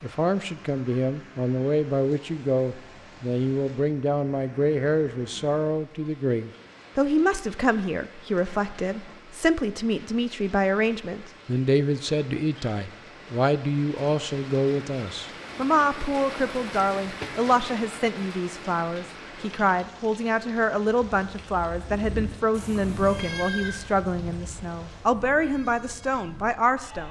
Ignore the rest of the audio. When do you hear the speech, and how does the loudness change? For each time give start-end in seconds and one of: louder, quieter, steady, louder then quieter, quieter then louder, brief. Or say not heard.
0.0-27.0 steady.